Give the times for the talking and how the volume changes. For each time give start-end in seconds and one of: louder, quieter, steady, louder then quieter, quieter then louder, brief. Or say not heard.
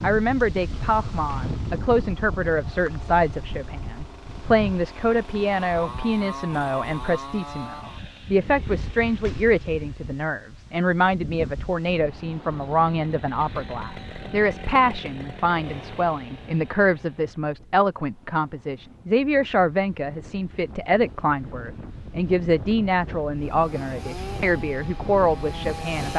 0.0-26.1 steady.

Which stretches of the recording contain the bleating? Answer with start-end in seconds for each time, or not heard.
not heard.